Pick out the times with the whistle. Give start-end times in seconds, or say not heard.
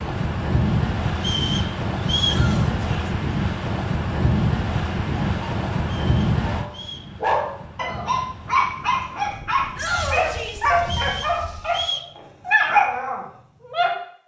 1.1-2.5, 5.8-7.1, 10.8-12.1.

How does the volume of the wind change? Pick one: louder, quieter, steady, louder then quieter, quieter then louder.
quieter.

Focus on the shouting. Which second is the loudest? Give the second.
10 s.